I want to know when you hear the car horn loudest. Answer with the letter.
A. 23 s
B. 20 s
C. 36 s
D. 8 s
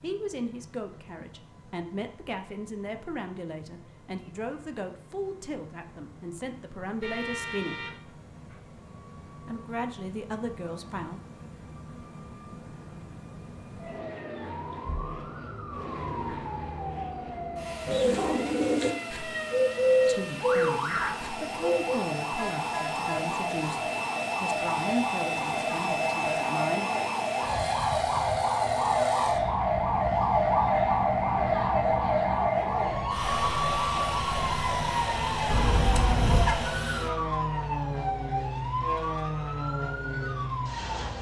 C.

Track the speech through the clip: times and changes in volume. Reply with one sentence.
You can hear the speech from 0.0 to 7.8 s, at a steady volume; briefly from 9.4 to 11.2 s; and from 20.1 to 26.9 s, getting louder then quieter.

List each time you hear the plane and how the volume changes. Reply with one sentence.
You can hear the plane from 0.0 to 41.1 s, getting louder.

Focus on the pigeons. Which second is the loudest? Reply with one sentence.
The loudest moment of the pigeons is at 20 seconds.